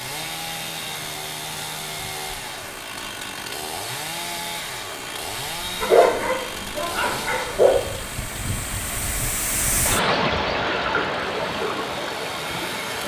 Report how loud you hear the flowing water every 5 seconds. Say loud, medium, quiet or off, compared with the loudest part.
quiet, medium, loud.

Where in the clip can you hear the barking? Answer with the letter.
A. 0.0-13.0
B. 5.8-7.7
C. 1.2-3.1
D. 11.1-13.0
B.